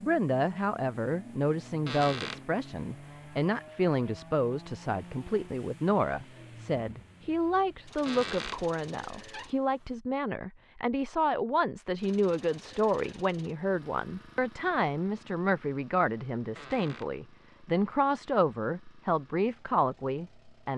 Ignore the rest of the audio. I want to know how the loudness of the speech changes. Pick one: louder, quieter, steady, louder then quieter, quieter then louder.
steady.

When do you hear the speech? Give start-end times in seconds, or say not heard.
0.0-20.7.